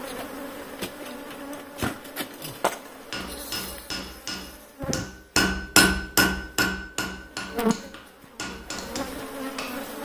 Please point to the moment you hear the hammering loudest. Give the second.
6 s.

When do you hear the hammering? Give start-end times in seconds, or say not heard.
3.1-9.8.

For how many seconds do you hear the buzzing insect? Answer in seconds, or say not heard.
10 s.